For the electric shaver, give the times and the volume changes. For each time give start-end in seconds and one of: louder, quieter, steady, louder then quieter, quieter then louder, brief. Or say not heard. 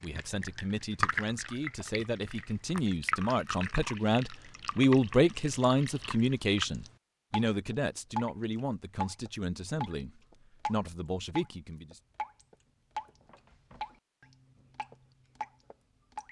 not heard.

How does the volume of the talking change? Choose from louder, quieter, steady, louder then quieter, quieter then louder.
louder then quieter.